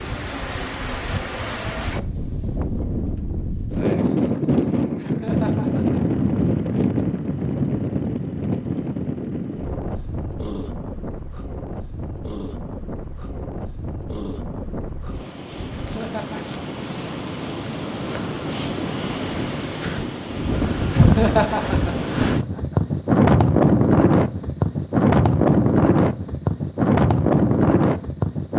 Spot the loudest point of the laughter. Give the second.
21 s.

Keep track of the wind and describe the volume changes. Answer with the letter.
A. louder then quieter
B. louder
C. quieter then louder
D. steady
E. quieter
C.